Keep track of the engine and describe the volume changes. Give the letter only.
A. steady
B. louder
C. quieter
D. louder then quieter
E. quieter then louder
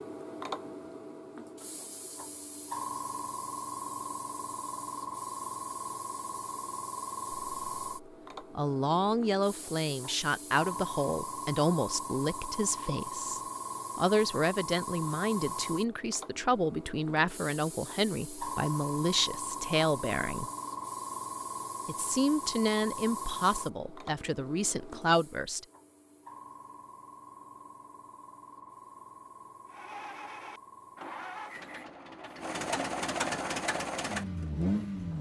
B.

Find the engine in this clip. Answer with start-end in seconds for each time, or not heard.
29.6-35.1.